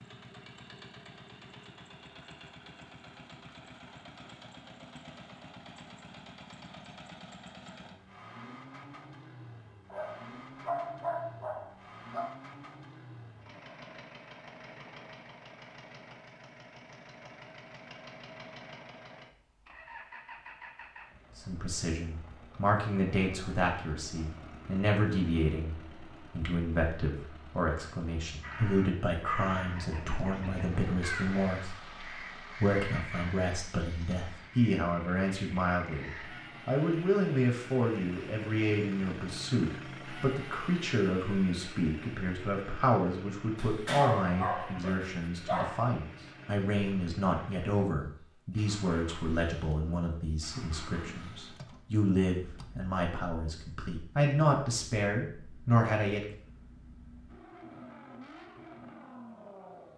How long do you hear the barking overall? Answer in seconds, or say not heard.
5 s.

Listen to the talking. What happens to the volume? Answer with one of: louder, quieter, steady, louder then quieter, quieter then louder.
steady.